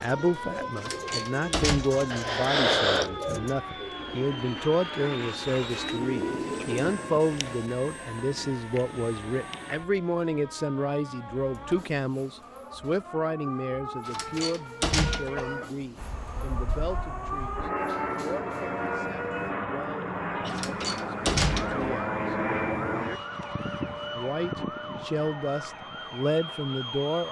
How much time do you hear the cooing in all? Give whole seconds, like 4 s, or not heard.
7 s.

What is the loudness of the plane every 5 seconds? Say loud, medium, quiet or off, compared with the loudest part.
medium, medium, off, loud, loud, medium.